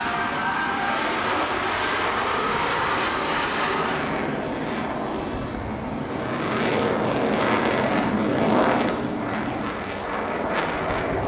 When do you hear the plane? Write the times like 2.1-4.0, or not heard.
0.0-11.2.